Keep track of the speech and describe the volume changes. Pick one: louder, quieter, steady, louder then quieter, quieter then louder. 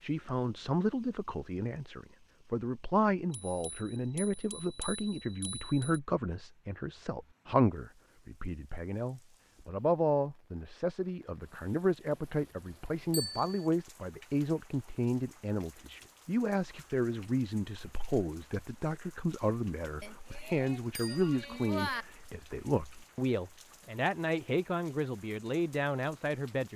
steady.